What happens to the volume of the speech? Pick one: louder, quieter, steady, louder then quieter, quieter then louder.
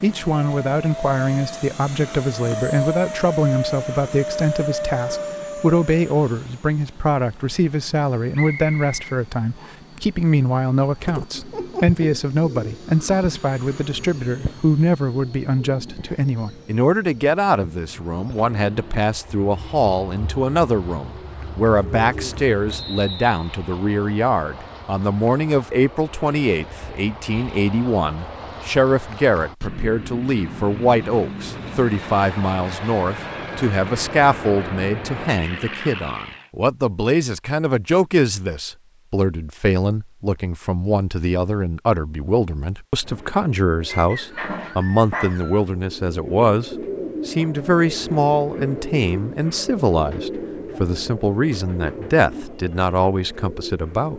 steady.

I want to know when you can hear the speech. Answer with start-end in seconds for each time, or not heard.
0.0-54.1.